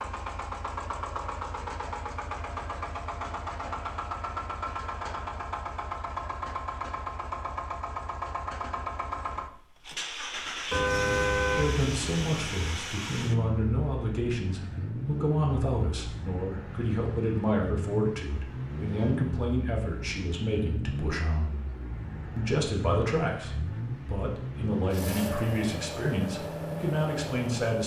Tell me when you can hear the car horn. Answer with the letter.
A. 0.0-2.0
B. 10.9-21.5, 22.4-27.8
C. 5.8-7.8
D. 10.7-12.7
D.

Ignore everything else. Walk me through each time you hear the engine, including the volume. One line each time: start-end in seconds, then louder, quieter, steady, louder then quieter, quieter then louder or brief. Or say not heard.
0.0-27.8 steady.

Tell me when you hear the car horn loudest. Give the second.
11 s.